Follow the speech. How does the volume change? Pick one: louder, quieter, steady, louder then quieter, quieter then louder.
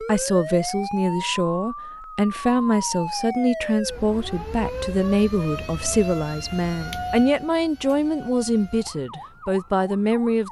steady.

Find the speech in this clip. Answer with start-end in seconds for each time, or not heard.
0.0-10.4.